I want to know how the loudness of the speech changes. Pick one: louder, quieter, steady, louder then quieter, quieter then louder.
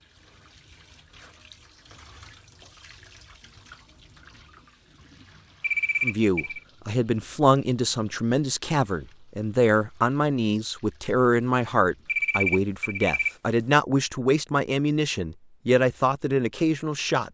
steady.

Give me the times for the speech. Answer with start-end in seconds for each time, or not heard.
6.0-17.2.